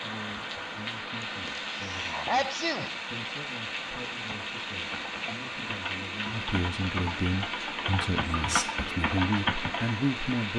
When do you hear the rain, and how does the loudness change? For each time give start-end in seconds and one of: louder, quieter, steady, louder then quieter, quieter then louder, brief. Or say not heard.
0.0-10.5 steady.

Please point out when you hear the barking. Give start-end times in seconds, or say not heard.
not heard.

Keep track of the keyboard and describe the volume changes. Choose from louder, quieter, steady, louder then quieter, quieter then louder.
louder.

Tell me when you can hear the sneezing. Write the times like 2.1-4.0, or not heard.
1.2-3.0, 8.3-8.8.